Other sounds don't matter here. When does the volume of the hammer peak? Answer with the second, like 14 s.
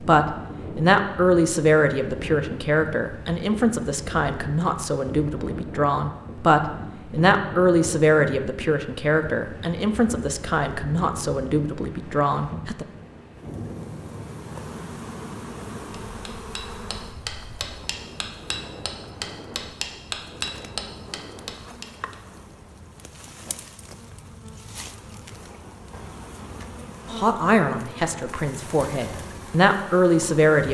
20 s.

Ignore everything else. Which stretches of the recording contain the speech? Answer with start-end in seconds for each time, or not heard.
0.0-12.8, 27.1-30.7.